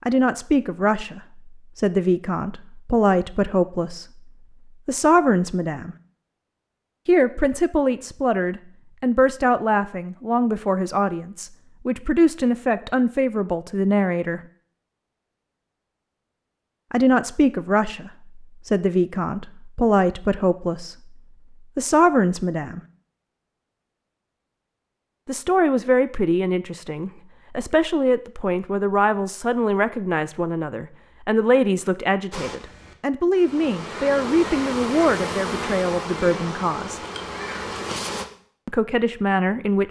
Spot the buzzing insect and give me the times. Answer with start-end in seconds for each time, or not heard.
32.3-38.2.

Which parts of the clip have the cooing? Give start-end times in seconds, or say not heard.
not heard.